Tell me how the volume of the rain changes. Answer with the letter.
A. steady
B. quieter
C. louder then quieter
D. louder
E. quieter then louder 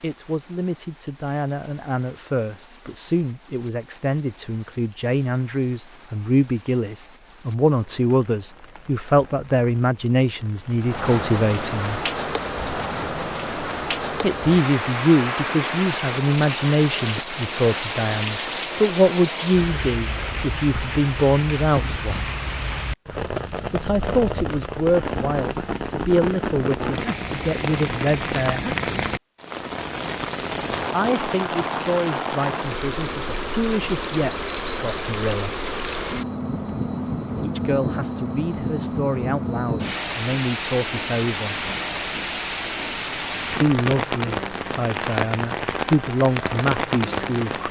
D.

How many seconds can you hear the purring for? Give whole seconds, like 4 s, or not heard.
not heard.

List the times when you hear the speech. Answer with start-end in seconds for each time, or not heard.
0.0-12.0, 14.2-22.3, 23.7-28.8, 30.9-35.6, 37.4-41.6, 43.6-47.6.